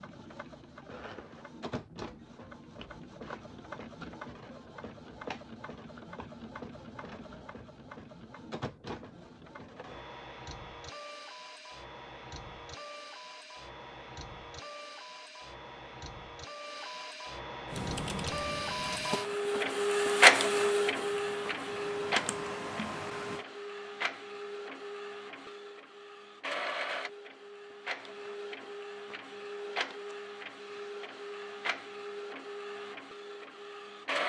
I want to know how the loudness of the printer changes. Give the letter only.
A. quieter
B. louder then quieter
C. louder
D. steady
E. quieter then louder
B.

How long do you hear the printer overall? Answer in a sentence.
You can hear the printer for 34 seconds altogether.